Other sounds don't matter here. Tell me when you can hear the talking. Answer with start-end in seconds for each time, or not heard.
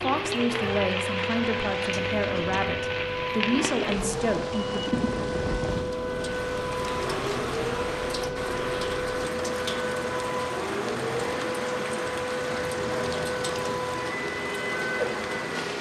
0.0-4.9.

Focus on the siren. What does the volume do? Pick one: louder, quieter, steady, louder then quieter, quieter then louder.
steady.